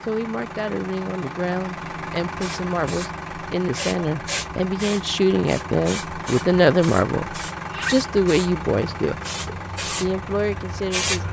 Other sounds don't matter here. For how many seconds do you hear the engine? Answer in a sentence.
The engine can be heard for 11 seconds in total.